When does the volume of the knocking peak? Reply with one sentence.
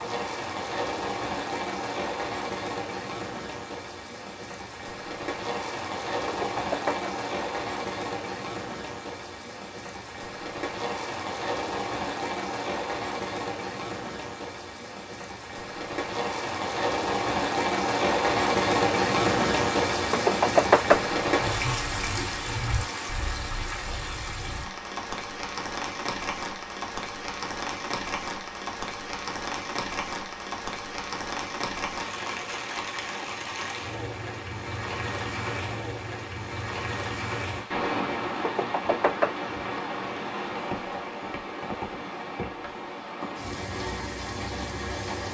The volume of the knocking peaks at 21 seconds.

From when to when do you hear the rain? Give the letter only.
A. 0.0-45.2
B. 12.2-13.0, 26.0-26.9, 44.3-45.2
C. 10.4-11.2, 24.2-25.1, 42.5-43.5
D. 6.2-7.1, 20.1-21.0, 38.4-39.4
A.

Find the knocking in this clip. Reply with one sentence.
The knocking can be heard from 6.2 to 7.1 s, from 20.1 to 21.0 s and from 38.4 to 39.4 s.